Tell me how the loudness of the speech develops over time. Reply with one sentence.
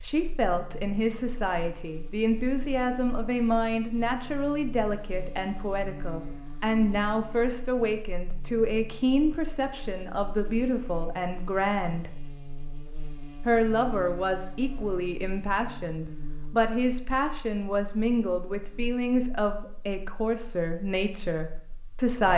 The loudness of the speech stays about the same.